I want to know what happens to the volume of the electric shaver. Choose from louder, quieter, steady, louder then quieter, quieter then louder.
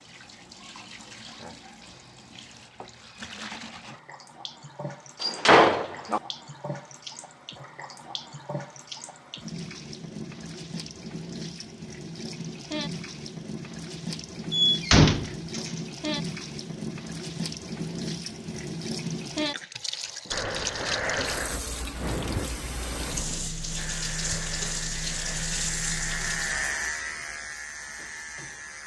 louder then quieter.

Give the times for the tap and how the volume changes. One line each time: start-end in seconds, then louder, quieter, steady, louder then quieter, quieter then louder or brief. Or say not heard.
0.0-26.7 louder.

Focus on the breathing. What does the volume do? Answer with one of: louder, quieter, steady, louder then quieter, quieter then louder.
quieter.